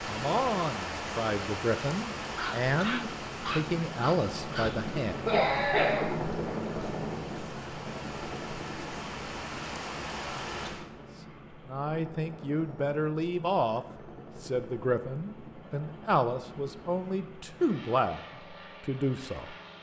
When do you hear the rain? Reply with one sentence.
You can hear the rain from 0.0 to 10.8 s.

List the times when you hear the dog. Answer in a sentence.
The dog can be heard from 2.4 to 4.7 s.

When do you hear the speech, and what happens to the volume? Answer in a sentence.
You can hear the speech from 0.0 to 5.3 s, at a steady volume; and from 11.7 to 19.6 s, at a steady volume.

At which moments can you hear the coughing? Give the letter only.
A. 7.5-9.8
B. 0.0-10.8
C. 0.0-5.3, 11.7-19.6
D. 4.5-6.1
D.